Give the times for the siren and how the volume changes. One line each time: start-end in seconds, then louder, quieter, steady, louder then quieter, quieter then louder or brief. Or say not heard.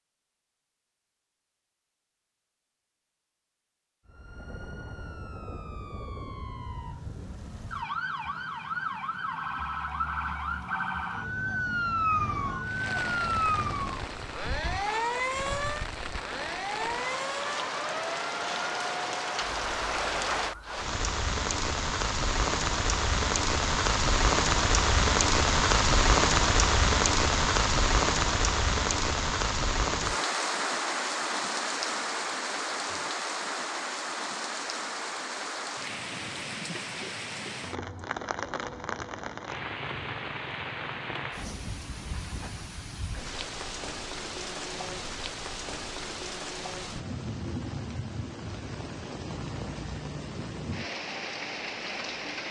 4.0-20.9 louder then quieter.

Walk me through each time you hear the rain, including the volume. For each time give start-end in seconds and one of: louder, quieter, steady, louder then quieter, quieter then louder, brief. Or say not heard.
12.6-52.4 louder then quieter.